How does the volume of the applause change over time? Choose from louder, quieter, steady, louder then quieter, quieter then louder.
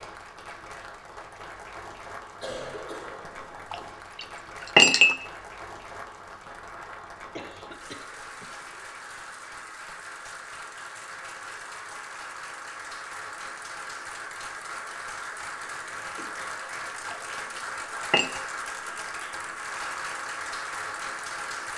louder.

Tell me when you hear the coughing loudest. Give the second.
3 s.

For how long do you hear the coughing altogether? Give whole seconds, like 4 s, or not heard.
4 s.